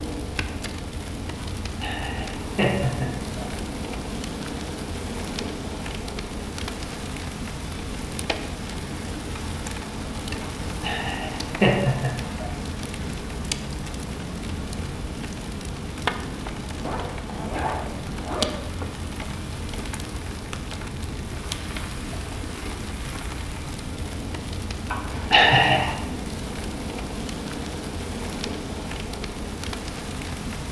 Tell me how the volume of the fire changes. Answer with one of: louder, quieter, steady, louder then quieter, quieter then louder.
steady.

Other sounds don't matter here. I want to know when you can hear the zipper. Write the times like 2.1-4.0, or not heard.
16.8-18.6.